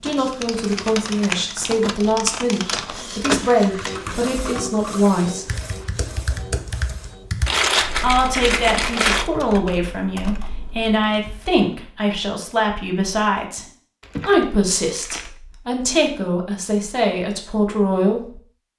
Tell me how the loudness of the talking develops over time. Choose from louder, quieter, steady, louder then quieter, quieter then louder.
steady.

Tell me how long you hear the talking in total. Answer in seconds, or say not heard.
16 s.